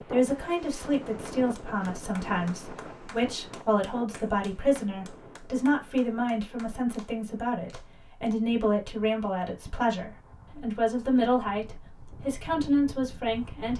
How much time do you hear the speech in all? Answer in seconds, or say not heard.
14 s.